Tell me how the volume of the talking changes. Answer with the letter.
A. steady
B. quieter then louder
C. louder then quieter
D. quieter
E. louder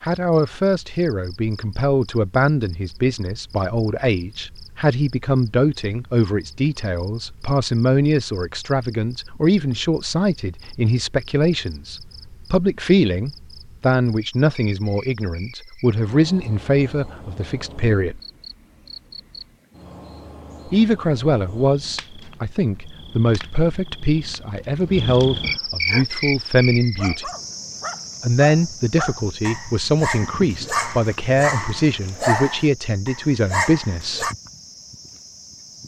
A.